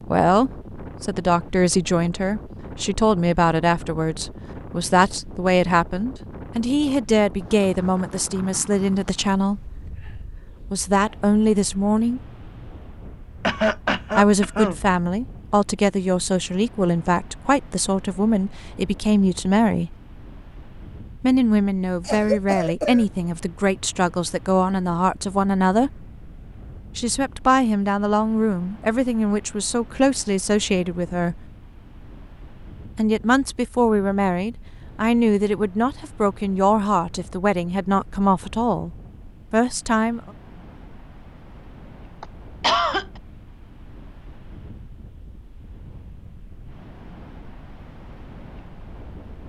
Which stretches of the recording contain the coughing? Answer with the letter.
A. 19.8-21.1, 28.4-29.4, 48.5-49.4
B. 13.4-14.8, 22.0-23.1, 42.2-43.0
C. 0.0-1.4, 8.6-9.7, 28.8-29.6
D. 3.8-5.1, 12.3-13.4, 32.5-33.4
B.